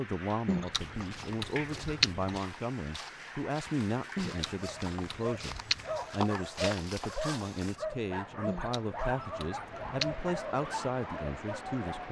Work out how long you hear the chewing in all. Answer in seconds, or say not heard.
6 s.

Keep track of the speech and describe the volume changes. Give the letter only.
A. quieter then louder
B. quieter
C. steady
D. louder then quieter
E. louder
C.